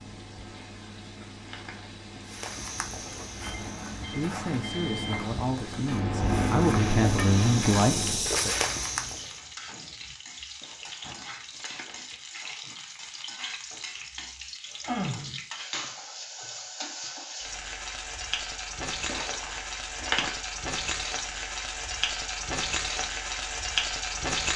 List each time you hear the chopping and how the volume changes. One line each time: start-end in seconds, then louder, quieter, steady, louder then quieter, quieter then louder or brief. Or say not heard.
not heard.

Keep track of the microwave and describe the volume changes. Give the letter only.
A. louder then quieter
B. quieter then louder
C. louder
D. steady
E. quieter
C.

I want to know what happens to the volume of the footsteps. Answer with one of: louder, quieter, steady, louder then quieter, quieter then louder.
louder.